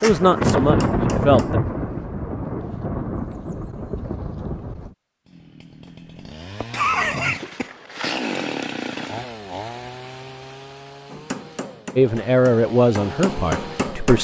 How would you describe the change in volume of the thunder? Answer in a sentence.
The loudness of the thunder goes down.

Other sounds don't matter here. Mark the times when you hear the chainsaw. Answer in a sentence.
You can hear the chainsaw from 5.2 to 14.1 s.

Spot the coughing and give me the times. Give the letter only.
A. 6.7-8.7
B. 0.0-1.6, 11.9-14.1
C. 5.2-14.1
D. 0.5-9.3
A.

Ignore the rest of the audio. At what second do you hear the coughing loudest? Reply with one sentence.
The volume of the coughing peaks at 7 seconds.